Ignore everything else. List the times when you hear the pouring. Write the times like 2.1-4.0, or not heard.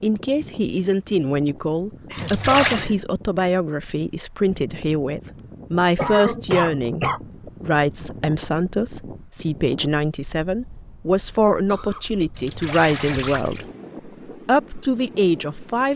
2.1-2.9, 12.3-13.7.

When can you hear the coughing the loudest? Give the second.
6 s.